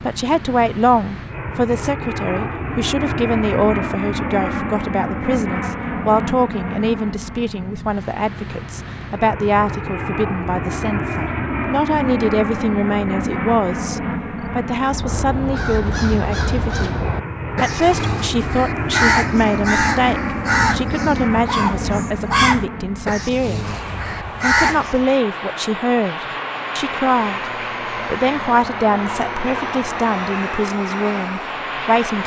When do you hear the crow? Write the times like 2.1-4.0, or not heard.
14.8-25.1.